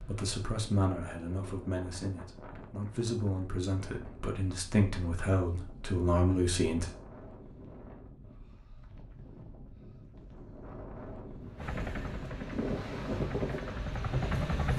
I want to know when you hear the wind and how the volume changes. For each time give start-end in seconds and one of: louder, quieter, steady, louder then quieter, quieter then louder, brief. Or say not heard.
0.0-14.4 louder.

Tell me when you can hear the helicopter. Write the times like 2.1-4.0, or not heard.
11.6-14.7.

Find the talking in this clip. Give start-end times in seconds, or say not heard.
0.0-6.9.